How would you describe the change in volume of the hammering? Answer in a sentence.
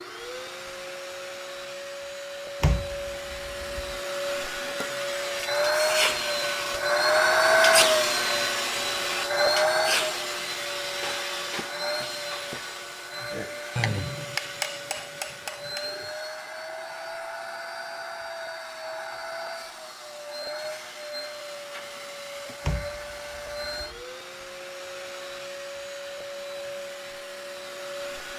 The loudness of the hammering goes up, then down.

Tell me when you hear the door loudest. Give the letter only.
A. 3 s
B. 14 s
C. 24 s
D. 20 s
A.